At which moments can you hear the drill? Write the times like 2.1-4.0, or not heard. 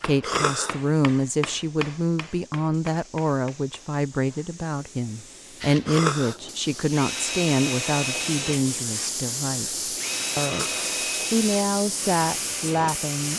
5.6-13.3.